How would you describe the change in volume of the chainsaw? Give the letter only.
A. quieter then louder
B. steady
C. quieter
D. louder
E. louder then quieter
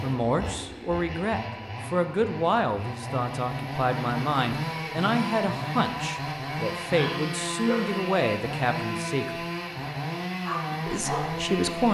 D.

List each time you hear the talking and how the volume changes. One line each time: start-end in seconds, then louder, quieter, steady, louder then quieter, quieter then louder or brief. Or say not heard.
0.0-9.4 steady
10.8-11.9 brief.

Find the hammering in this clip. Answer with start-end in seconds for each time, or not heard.
not heard.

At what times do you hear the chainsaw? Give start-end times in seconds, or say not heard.
0.0-11.9.